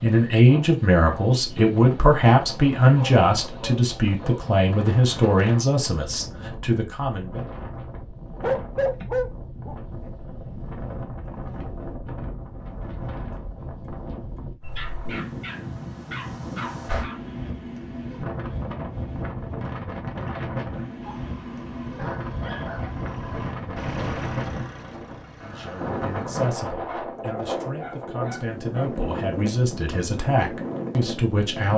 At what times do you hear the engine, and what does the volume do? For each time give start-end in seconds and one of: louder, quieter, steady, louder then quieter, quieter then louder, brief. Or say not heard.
21.0-25.7 louder then quieter.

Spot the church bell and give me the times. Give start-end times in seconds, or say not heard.
not heard.